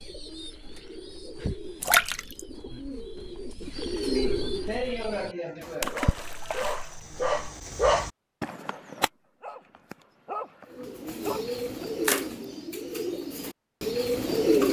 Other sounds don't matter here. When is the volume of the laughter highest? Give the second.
5 s.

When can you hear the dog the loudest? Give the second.
8 s.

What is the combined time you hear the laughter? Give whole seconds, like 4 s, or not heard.
3 s.